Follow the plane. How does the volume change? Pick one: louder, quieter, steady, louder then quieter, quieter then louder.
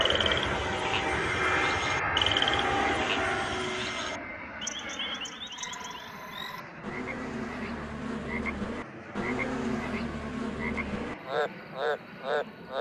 quieter.